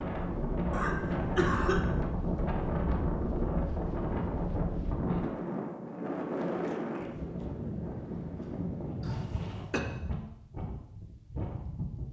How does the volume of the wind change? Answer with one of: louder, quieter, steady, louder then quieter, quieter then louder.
quieter.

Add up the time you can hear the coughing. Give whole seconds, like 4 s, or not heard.
2 s.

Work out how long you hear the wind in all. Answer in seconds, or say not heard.
12 s.